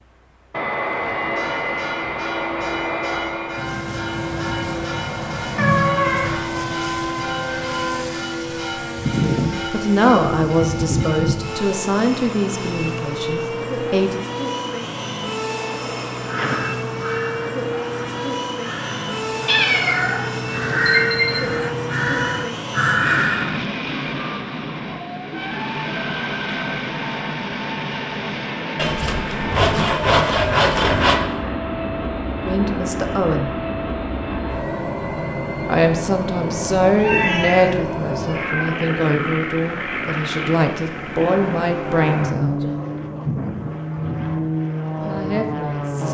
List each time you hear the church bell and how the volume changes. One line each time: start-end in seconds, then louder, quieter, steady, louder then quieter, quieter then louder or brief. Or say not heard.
0.9-11.8 steady.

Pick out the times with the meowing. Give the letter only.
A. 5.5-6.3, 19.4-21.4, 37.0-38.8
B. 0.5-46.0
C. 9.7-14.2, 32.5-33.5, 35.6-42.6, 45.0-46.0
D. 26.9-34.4
A.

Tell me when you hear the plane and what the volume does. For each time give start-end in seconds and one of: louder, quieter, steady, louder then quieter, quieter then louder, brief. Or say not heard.
0.5-46.0 steady.